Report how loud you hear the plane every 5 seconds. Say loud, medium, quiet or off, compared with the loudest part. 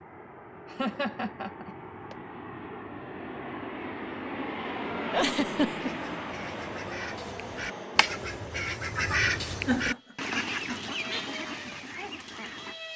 loud, loud, medium.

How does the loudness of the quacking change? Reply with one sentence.
The loudness of the quacking goes up, then down.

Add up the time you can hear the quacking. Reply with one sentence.
You can hear the quacking for 7 seconds altogether.